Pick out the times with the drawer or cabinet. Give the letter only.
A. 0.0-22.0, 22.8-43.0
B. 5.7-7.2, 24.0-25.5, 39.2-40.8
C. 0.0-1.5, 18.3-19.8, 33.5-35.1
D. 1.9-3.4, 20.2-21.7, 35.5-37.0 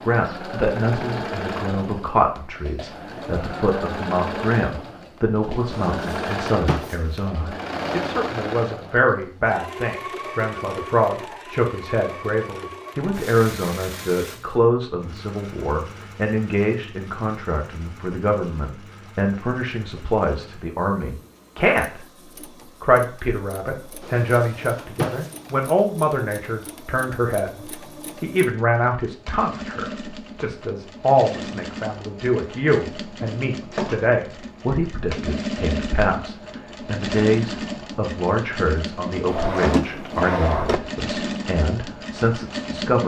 B.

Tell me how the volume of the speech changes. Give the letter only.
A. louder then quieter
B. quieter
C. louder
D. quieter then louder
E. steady
E.